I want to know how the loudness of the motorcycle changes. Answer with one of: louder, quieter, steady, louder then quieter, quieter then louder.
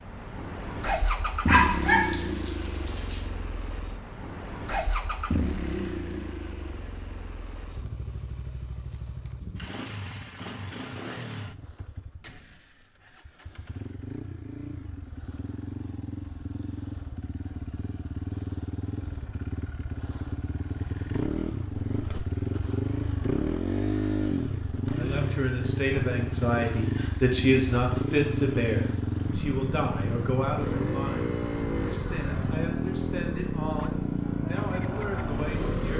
quieter then louder.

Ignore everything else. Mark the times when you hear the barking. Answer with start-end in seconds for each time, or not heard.
1.4-3.2.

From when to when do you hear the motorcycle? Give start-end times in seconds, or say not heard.
0.0-35.9.